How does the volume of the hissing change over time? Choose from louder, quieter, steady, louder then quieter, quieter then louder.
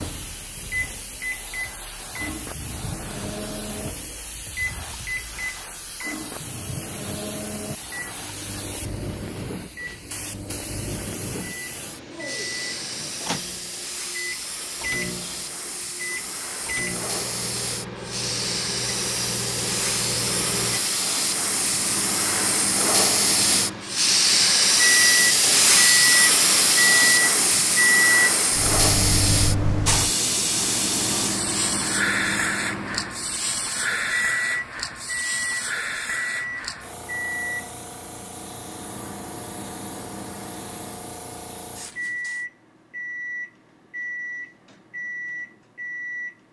louder then quieter.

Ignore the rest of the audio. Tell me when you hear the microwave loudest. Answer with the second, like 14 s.
28 s.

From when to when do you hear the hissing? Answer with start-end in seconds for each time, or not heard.
0.0-42.5.